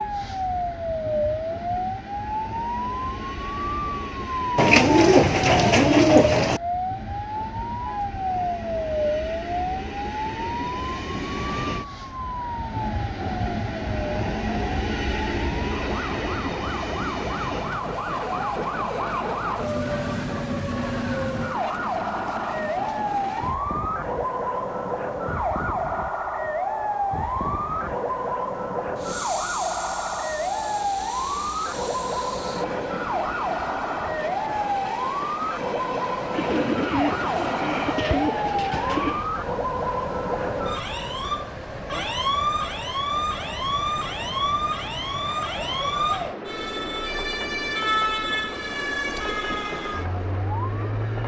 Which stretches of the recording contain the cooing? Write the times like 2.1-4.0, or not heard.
4.5-6.6, 36.3-39.3.